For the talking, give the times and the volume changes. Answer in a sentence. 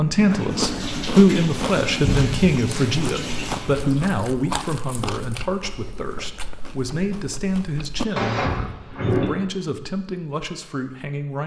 The talking can be heard from 0.0 to 11.4 s, getting quieter.